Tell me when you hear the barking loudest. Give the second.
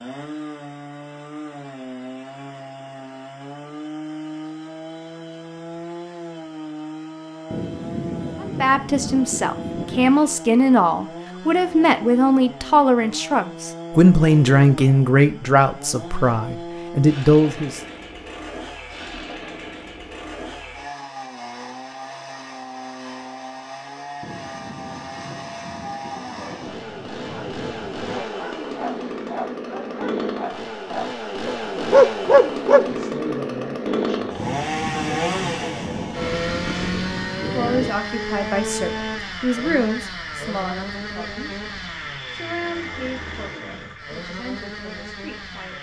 32 s.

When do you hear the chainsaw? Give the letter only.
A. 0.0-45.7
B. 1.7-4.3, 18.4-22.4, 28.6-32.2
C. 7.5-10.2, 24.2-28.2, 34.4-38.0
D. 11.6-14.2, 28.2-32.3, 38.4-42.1
A.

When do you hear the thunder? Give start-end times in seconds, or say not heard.
7.5-10.2, 24.2-28.2, 34.4-38.0.